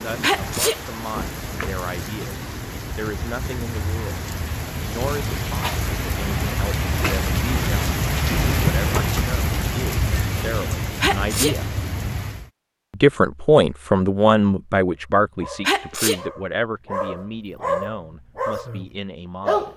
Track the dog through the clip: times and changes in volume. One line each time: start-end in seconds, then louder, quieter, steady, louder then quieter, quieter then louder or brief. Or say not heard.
15.3-19.7 louder then quieter.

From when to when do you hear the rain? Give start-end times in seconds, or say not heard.
0.0-12.5.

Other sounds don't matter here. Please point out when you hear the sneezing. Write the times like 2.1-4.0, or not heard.
0.2-0.8, 11.0-11.6, 15.6-16.2.